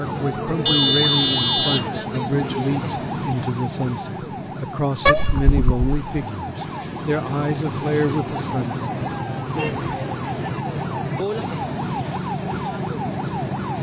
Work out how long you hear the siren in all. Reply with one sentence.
You can hear the siren for 14 seconds altogether.